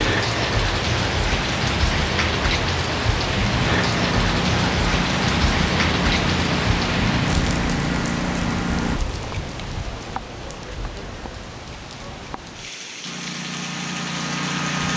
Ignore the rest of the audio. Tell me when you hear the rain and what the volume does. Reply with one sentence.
The rain can be heard from 0.0 to 14.9 s, getting quieter.